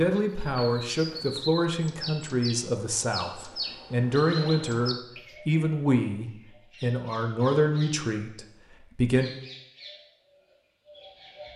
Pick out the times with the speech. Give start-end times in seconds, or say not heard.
0.0-9.3.